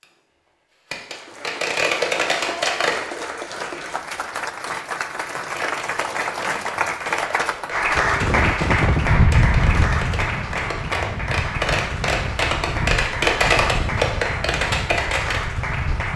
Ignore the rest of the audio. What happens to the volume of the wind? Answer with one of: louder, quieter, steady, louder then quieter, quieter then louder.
quieter.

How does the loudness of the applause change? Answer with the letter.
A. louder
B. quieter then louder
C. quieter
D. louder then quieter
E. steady
D.